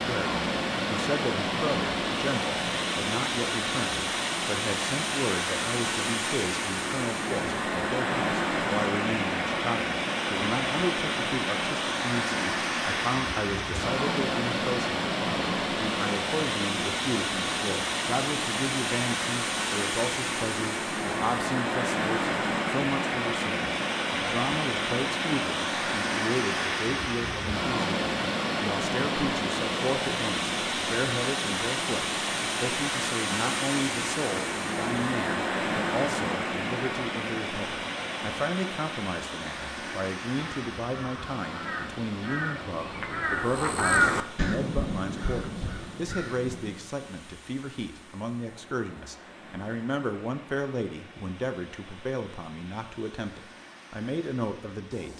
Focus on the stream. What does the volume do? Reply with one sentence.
The loudness of the stream goes down.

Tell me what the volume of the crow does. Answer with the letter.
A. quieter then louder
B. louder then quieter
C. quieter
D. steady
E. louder
B.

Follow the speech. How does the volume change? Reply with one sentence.
The loudness of the speech stays about the same.